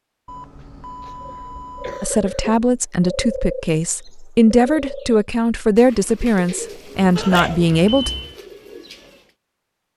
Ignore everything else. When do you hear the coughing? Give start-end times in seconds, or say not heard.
1.0-2.5, 7.2-7.7.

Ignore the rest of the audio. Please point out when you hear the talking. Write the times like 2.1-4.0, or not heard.
2.0-8.1.